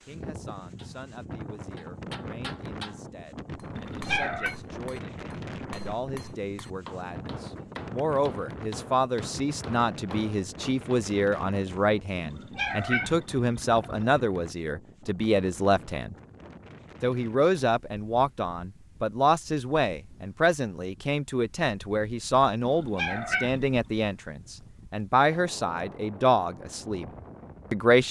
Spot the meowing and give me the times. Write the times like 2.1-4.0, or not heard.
3.8-4.5, 12.2-14.1, 22.6-23.8.